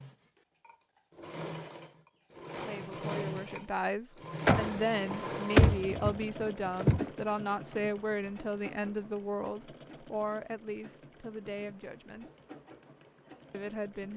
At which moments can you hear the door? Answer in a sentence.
The door can be heard from 4.5 to 7.1 s.